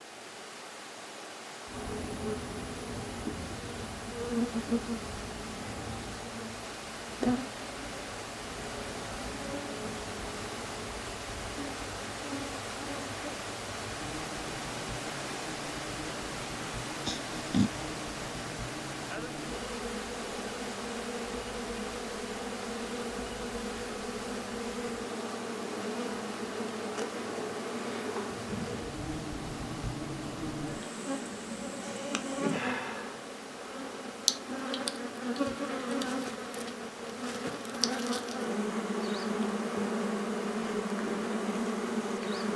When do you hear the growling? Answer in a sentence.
You can hear the growling from 17.1 to 17.7 s.